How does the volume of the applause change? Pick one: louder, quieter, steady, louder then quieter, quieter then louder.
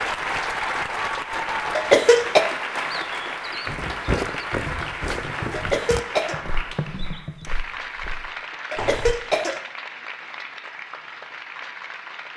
quieter.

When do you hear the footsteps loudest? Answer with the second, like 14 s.
4 s.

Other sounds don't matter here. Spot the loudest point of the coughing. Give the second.
2 s.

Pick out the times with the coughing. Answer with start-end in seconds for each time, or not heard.
1.8-2.5, 5.5-6.4, 8.7-9.6.